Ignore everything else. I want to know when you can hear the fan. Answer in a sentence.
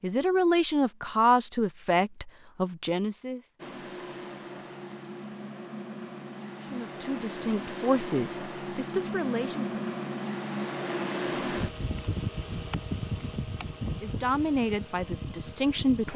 The fan can be heard from 3.5 to 16.1 s.